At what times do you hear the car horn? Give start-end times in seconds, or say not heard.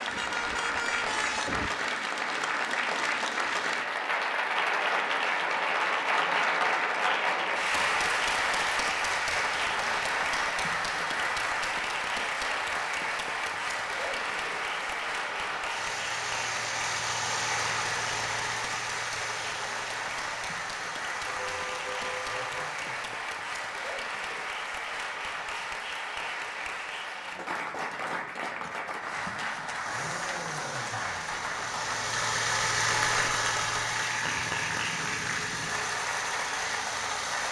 0.1-1.7, 21.2-22.6, 34.2-35.9.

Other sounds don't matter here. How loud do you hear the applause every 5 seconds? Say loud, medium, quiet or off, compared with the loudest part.
loud, loud, loud, medium, medium, medium, medium, medium.